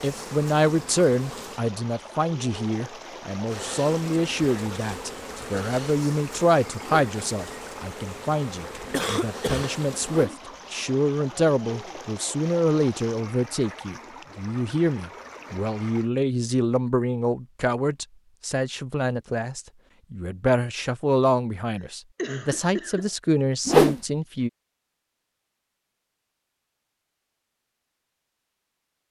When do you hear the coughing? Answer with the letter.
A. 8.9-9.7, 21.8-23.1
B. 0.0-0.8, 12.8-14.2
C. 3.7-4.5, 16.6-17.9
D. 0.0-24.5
A.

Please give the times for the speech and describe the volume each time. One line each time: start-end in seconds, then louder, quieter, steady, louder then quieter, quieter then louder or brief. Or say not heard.
0.0-24.5 steady.